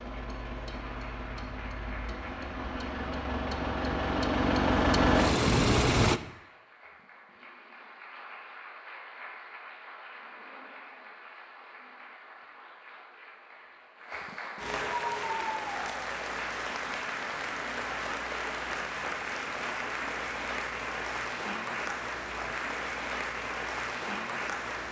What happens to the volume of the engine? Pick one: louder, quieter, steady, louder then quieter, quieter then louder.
louder.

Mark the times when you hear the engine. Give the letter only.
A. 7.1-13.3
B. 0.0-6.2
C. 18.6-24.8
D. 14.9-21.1
B.